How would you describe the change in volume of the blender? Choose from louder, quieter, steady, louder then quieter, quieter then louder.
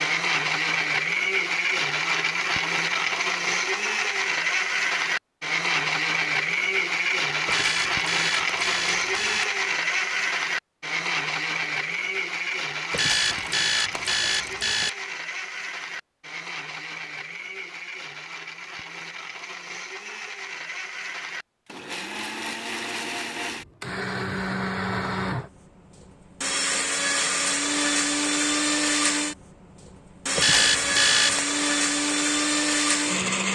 quieter then louder.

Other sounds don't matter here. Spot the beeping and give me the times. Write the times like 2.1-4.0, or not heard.
7.5-9.4, 12.9-14.9, 30.4-31.4.